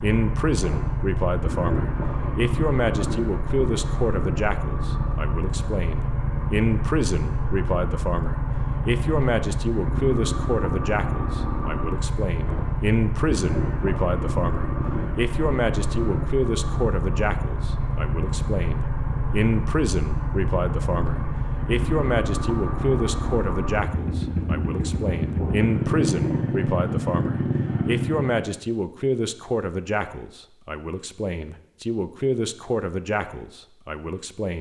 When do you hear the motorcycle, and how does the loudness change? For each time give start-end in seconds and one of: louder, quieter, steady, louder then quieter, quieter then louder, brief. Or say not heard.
0.0-28.5 steady.